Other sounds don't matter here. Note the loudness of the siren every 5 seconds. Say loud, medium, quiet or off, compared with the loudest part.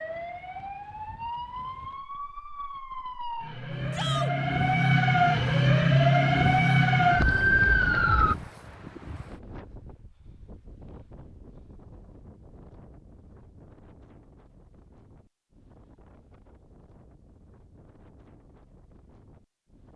medium, loud, off, off.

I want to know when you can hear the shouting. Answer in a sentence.
The shouting can be heard from 3.9 to 4.3 s.